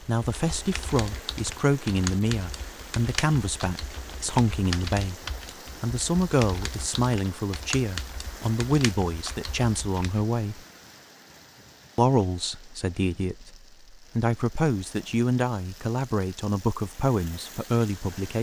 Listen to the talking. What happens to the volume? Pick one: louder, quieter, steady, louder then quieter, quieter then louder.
steady.